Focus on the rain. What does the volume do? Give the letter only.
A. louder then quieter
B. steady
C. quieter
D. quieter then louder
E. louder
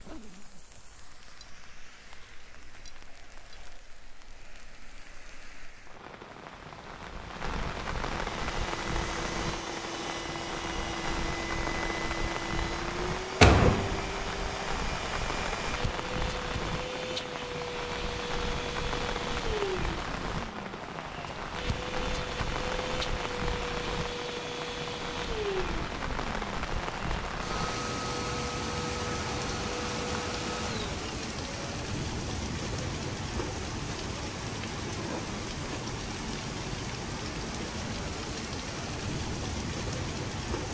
E.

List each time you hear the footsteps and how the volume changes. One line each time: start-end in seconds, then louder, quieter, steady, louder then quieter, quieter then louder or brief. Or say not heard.
not heard.